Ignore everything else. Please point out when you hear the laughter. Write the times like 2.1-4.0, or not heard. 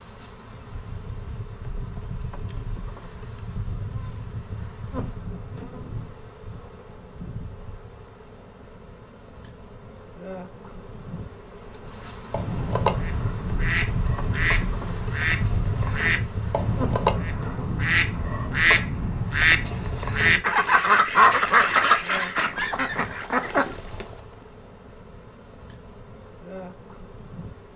not heard.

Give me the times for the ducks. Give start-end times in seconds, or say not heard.
12.3-24.1.